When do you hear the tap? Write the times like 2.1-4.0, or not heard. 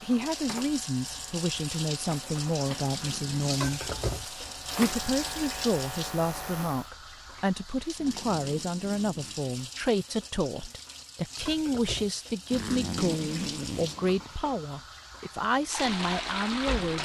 0.0-17.0.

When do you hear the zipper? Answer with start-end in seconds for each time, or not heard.
2.9-3.5, 8.0-9.5, 12.5-14.3.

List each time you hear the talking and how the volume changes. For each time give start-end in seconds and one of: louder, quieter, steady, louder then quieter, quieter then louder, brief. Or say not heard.
0.0-4.0 steady
4.8-17.0 steady.